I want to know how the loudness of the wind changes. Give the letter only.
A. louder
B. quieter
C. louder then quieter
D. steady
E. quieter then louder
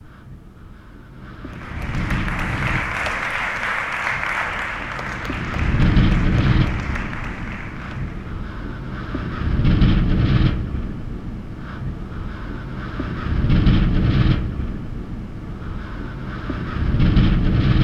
A.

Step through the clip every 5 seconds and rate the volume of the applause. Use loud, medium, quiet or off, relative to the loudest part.
loud, medium, off, off.